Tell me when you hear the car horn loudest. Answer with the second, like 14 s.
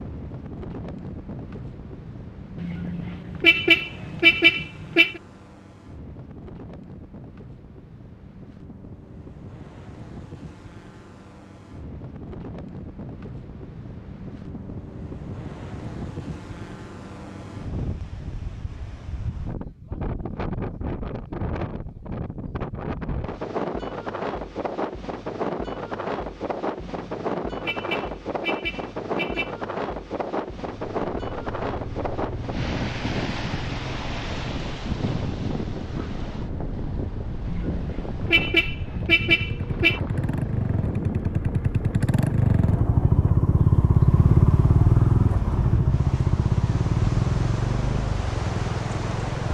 4 s.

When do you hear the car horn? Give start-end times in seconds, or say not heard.
2.5-5.2, 26.8-29.5, 37.5-40.0.